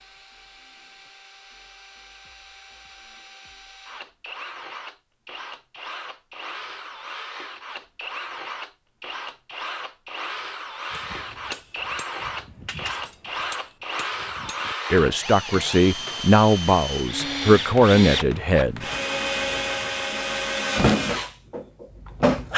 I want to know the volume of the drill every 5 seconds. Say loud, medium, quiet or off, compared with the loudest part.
quiet, quiet, medium, medium, loud.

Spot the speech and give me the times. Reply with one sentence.
You can hear the speech from 14.9 to 18.9 s.